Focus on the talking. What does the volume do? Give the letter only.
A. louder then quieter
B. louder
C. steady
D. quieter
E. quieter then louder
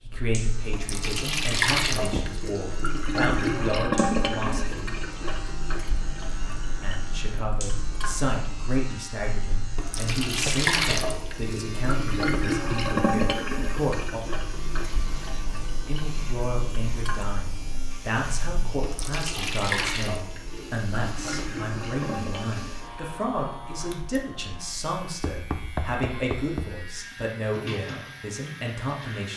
C.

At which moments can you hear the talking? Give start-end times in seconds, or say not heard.
0.1-5.0, 6.8-14.2, 15.8-29.3.